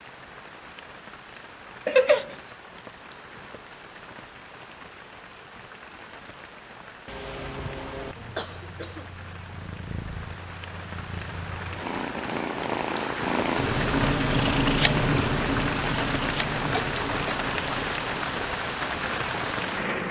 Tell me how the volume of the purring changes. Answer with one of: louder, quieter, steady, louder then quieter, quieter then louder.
louder then quieter.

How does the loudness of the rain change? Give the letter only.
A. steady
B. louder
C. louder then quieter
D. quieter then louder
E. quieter
B.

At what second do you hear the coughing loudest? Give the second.
2 s.